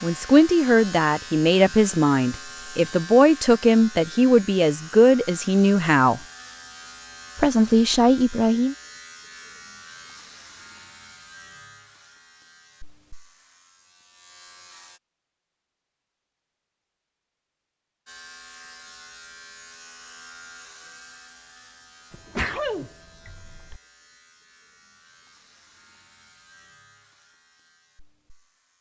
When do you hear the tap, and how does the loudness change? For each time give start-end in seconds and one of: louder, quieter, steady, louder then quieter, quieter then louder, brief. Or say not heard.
not heard.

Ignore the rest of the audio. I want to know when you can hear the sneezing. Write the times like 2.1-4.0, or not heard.
22.1-23.8.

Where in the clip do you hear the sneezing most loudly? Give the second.
23 s.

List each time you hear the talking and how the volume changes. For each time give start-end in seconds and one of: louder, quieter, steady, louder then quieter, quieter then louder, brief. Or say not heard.
0.0-6.2 steady
7.3-8.8 brief.